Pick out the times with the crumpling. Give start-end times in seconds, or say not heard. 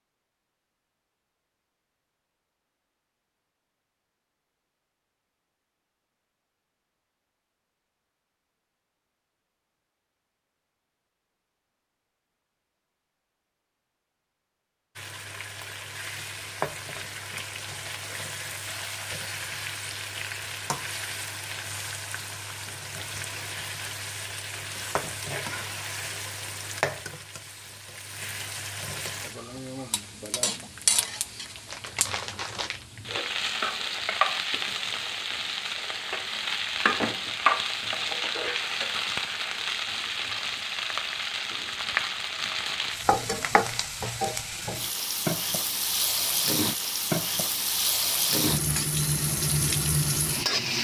31.6-32.9.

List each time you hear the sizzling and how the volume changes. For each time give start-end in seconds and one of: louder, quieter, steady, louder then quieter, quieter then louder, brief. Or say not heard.
14.9-50.7 louder.